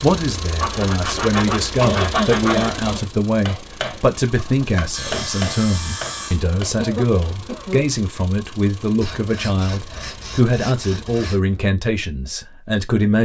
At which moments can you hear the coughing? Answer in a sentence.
The coughing can be heard from 1.8 to 3.0 s and from 6.8 to 7.8 s.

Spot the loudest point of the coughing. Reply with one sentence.
The volume of the coughing peaks at 2 seconds.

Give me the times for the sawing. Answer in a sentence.
The sawing can be heard from 0.6 to 2.7 s, from 4.9 to 6.4 s and from 9.0 to 11.4 s.